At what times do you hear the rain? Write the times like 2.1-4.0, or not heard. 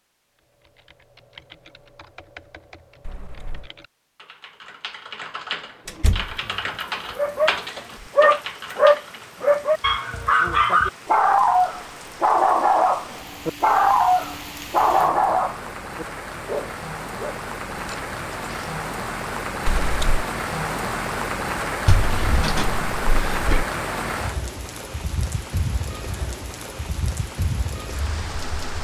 6.2-28.7.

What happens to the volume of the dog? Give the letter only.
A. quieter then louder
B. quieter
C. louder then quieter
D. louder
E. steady
B.